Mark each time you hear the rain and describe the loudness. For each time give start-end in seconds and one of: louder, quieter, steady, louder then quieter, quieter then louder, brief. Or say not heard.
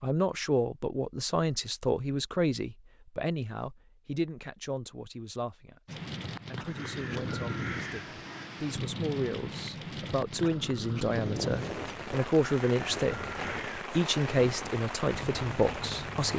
5.8-16.3 steady.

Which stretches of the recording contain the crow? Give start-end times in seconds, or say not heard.
6.7-8.5, 11.1-16.3.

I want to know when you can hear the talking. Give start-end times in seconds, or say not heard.
0.0-16.3.